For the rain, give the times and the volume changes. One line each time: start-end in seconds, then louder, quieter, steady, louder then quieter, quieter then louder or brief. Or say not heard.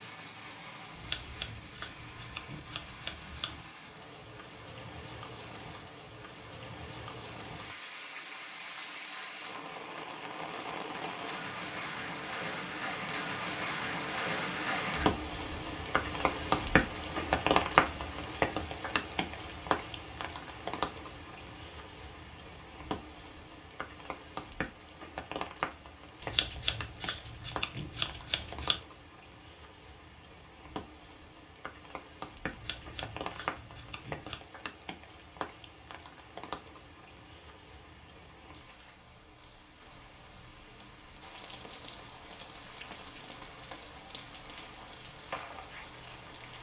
0.0-46.5 louder then quieter.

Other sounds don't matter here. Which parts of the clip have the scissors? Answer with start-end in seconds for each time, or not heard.
0.9-3.6, 26.2-28.8, 32.5-34.4.